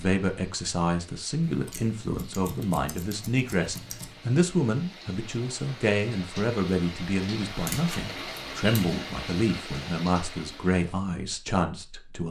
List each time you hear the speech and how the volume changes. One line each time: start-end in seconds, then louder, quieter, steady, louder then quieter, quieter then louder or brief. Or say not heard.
0.0-12.2 steady.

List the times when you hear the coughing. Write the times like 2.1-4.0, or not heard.
not heard.